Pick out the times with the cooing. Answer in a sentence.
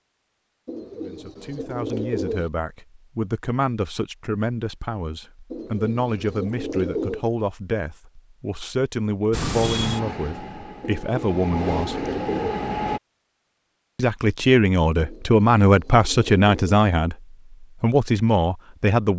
The cooing can be heard from 0.7 to 2.5 s, from 5.5 to 7.2 s, from 10.8 to 12.7 s and from 15.0 to 16.8 s.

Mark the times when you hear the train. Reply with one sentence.
The train can be heard from 9.3 to 13.0 s.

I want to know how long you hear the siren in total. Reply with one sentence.
The siren can't be heard in this clip.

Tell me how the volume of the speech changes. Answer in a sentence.
The loudness of the speech goes up.